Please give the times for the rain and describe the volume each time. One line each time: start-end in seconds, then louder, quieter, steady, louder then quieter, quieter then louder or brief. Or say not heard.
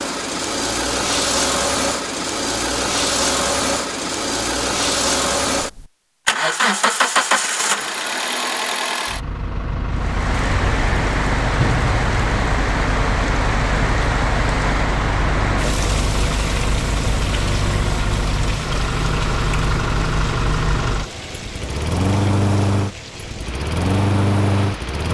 9.9-25.0 quieter.